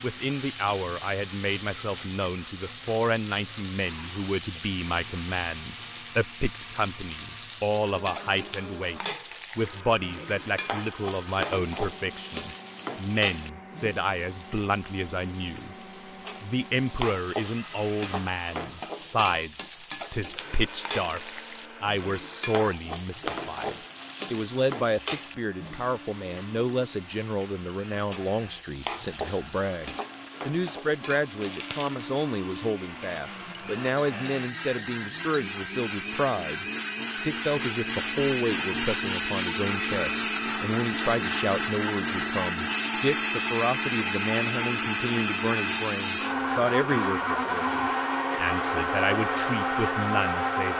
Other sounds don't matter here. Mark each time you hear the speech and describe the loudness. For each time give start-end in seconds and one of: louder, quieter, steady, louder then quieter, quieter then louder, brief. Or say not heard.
0.0-15.8 steady
16.4-50.7 steady.